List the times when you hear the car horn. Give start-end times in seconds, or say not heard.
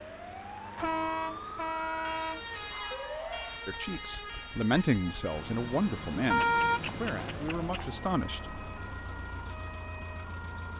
0.8-2.4, 6.3-8.0.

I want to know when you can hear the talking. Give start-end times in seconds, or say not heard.
3.6-8.6.